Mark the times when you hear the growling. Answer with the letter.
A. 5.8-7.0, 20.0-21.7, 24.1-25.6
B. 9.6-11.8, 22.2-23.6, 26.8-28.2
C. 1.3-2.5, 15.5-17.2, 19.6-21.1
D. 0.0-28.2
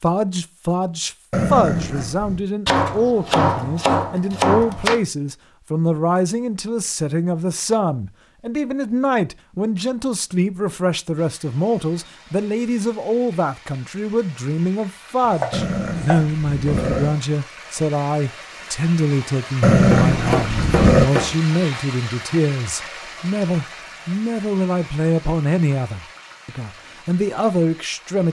C.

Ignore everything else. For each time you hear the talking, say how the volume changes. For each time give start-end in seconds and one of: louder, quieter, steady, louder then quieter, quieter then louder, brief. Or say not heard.
0.0-28.2 steady.